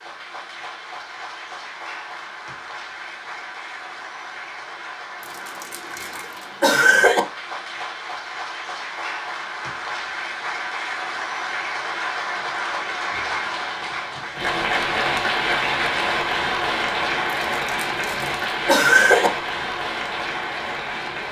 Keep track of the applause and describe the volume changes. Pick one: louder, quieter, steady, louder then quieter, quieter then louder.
louder.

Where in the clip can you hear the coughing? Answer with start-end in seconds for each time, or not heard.
5.5-7.2, 17.4-19.3.